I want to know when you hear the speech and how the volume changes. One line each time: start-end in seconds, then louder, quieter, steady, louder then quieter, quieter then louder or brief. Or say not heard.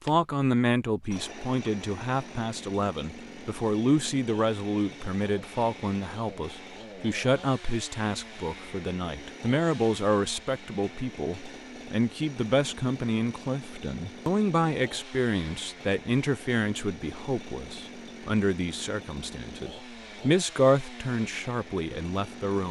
0.0-22.6 steady.